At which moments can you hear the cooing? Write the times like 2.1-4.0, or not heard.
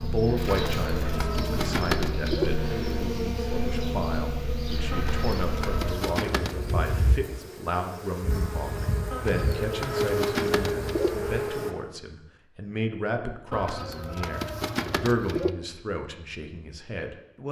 0.5-2.5, 4.9-6.8, 9.1-11.1, 13.5-15.5.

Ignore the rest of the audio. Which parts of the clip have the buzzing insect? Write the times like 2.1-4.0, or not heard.
0.0-11.7.